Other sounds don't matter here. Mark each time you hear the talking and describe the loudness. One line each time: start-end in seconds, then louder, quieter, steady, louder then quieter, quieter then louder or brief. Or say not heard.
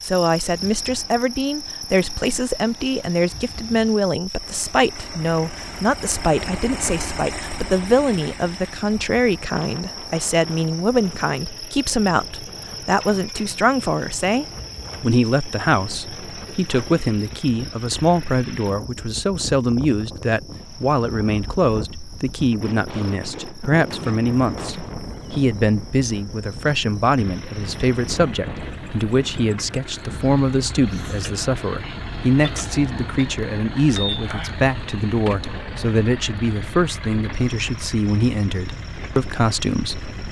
0.0-40.2 steady.